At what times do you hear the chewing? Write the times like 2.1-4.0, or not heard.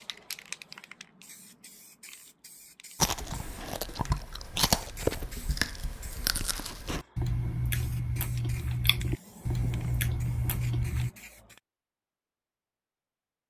3.0-11.1.